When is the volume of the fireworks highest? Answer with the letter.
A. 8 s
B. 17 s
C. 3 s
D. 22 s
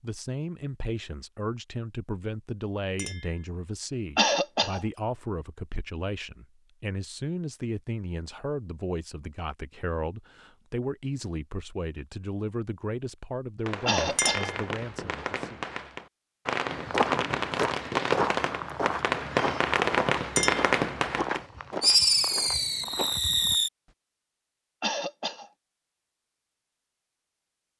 D.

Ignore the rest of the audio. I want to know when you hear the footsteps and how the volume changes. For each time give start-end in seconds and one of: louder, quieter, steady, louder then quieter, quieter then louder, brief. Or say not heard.
16.6-23.6 quieter.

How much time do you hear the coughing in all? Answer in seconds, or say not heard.
2 s.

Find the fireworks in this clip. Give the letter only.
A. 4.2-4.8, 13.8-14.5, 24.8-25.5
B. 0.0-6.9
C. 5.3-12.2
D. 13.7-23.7
D.